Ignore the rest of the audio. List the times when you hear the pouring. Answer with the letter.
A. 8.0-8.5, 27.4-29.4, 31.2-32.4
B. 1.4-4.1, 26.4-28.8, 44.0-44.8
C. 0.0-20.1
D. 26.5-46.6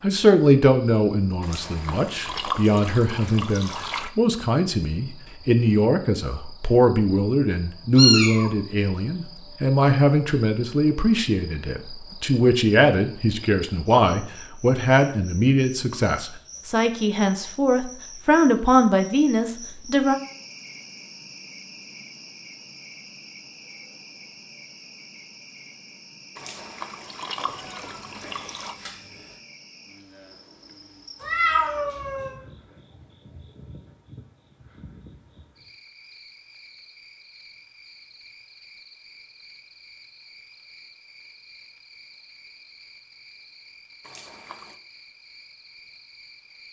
B.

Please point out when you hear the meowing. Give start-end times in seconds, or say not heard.
8.0-8.5, 27.4-29.4, 31.2-32.4.